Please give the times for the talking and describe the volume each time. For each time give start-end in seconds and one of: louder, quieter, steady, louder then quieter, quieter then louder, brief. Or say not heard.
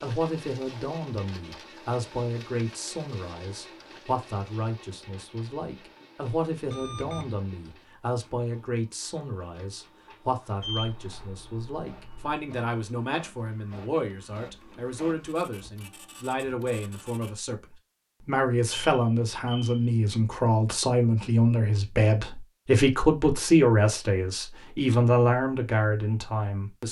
0.0-26.8 louder.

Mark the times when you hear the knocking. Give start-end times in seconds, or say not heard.
not heard.